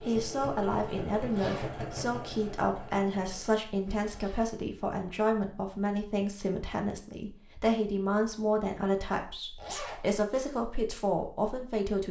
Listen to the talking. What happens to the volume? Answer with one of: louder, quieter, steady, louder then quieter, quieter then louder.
steady.